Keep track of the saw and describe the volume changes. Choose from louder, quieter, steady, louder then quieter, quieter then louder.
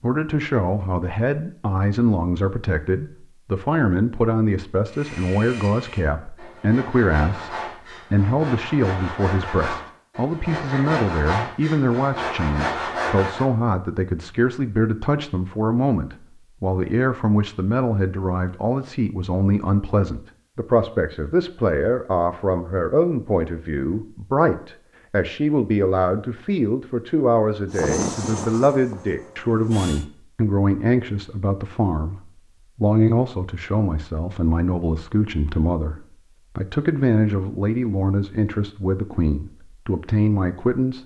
louder.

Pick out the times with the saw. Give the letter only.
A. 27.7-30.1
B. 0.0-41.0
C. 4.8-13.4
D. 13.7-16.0
C.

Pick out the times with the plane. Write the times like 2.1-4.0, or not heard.
27.7-30.1.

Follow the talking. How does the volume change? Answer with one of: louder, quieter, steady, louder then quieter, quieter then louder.
steady.